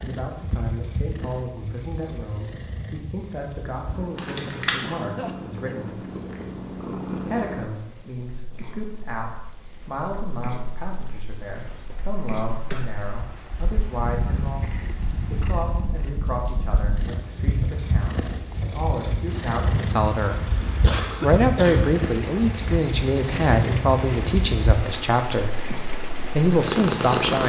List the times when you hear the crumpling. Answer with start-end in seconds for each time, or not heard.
4.2-5.0.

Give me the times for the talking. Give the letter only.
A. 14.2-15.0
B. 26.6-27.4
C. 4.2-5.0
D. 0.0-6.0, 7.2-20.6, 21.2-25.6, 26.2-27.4
D.